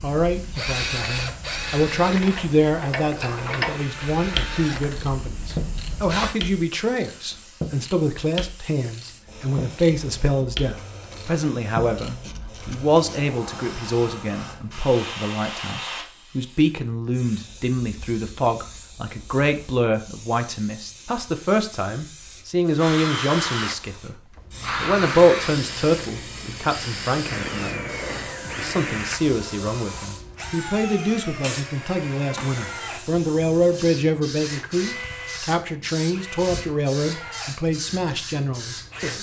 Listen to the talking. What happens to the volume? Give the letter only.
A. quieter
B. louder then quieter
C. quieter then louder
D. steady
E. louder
D.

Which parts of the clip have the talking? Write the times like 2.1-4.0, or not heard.
0.0-27.9, 28.6-39.1.